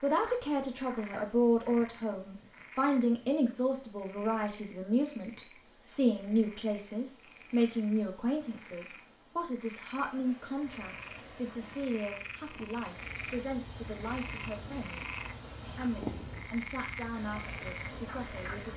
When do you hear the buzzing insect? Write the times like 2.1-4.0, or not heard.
10.6-18.7.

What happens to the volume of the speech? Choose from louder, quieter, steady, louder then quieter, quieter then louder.
quieter.